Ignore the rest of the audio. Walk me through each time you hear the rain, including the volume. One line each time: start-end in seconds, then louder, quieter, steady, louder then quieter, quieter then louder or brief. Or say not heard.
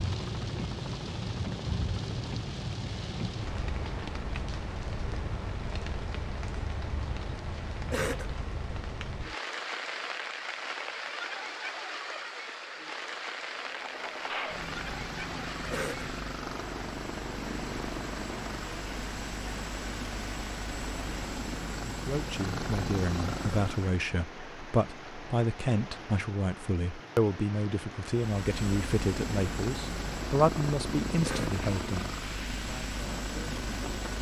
0.0-34.1 quieter.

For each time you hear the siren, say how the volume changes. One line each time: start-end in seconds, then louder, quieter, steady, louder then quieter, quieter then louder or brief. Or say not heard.
not heard.